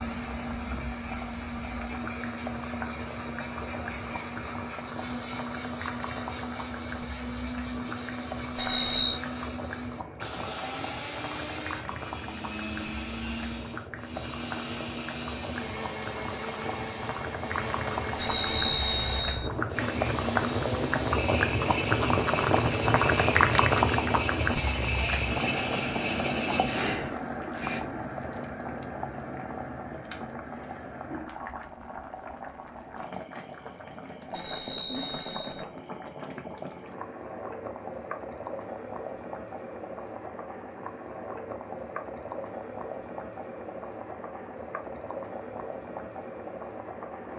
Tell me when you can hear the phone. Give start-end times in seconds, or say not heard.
8.6-9.2, 18.1-19.5, 34.3-35.6.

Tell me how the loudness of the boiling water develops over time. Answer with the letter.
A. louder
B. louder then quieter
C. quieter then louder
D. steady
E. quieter
B.